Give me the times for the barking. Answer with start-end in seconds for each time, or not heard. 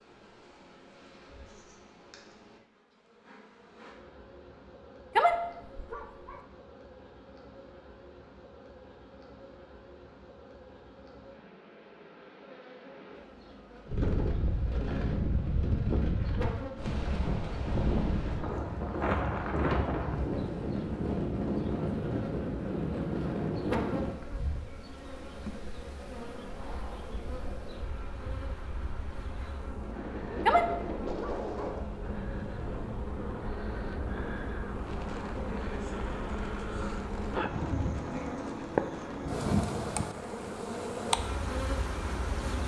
5.2-6.3, 30.4-31.7.